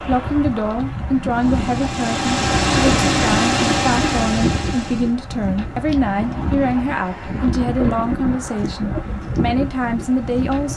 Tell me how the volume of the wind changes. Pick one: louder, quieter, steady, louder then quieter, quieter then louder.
steady.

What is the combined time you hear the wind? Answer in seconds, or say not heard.
11 s.